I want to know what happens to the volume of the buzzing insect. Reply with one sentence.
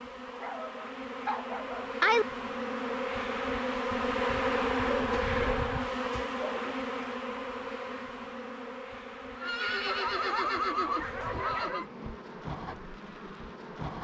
The volume of the buzzing insect goes up, then down.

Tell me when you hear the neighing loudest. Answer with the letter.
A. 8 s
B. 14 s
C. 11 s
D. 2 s
C.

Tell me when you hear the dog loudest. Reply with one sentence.
The loudest moment of the dog is at 2 seconds.